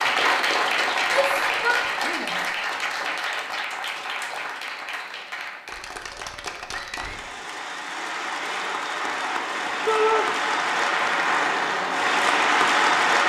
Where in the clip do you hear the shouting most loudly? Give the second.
10 s.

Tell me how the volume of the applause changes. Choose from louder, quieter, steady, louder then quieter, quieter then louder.
quieter then louder.